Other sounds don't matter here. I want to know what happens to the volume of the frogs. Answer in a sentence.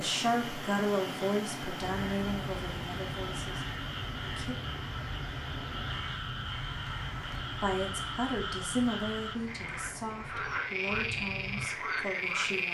The volume of the frogs goes up.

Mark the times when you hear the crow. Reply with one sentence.
You can hear the crow from 1.9 to 11.7 s.